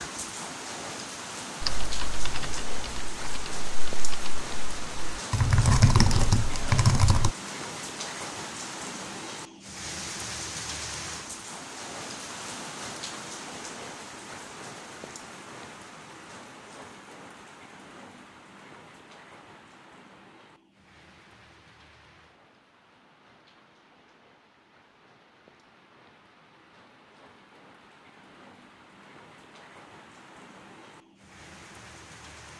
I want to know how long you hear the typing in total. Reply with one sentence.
The typing can be heard for 6 seconds in total.